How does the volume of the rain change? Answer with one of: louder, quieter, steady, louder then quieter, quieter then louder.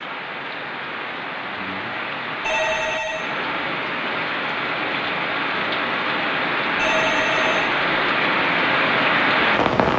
louder.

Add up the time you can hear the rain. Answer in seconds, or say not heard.
10 s.